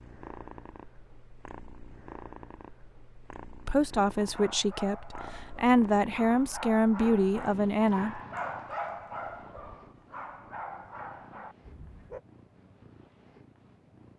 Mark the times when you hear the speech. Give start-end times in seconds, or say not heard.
3.6-8.2.